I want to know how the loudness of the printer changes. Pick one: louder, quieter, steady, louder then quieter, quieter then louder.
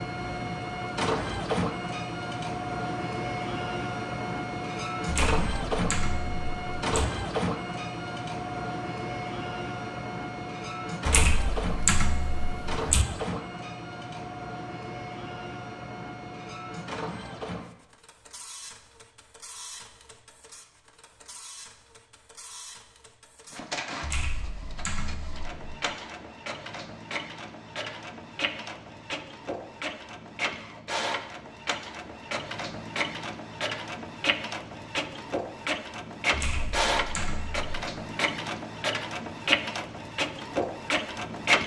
quieter then louder.